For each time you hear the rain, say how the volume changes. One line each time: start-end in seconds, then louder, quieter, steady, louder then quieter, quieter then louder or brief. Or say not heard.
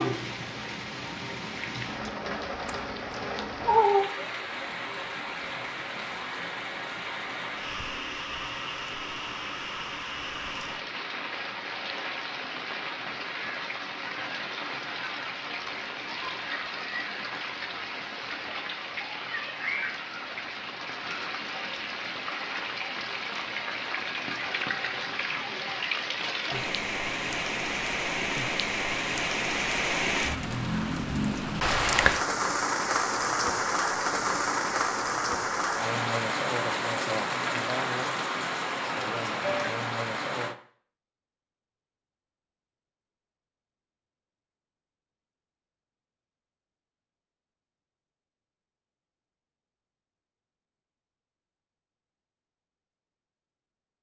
0.0-40.5 louder.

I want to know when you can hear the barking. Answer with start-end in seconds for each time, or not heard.
not heard.